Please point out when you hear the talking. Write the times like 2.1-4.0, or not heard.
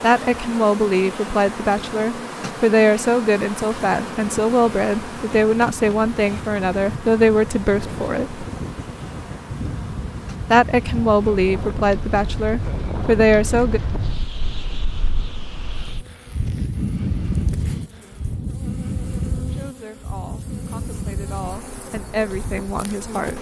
0.0-8.4, 10.5-13.8, 19.4-23.3.